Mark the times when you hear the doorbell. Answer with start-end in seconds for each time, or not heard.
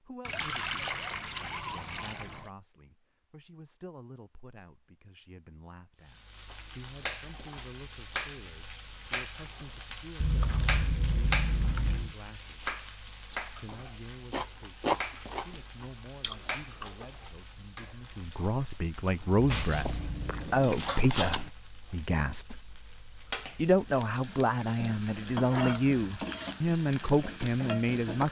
not heard.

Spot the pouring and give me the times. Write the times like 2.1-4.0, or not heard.
0.2-2.5, 10.2-12.2, 19.4-20.3.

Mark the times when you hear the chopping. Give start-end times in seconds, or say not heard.
not heard.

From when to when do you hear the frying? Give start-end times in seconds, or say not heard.
6.0-28.2.